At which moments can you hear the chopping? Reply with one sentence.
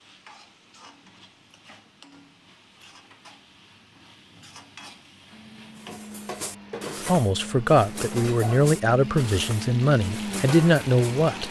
You can't hear the chopping here.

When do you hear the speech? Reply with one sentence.
You can hear the speech from 7.0 to 11.4 s.